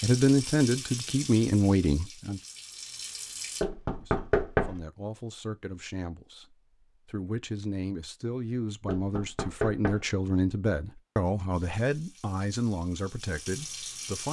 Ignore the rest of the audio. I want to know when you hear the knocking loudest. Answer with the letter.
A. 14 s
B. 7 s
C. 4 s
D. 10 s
C.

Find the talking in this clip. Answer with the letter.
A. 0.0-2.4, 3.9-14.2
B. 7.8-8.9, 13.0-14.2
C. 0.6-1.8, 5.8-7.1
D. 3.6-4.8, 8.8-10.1
A.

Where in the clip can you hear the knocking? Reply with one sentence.
The knocking can be heard from 3.6 to 4.8 s and from 8.8 to 10.1 s.